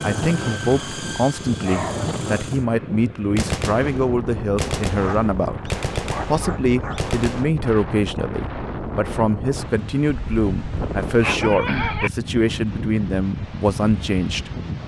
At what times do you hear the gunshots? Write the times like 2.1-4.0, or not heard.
3.4-7.5.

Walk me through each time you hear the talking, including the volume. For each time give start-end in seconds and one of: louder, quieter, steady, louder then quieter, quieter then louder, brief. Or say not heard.
0.0-14.5 steady.